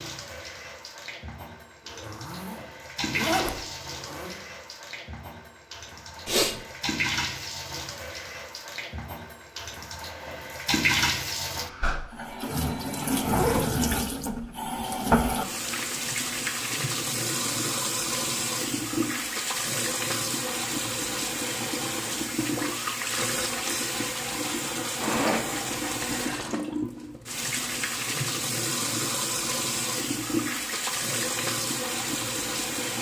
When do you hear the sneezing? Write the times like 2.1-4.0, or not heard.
6.2-6.7.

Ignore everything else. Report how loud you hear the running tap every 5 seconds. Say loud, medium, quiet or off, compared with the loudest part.
medium, medium, loud, loud, loud, loud, loud.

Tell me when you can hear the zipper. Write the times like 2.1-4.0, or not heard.
1.9-4.4, 13.2-13.7, 25.0-26.6.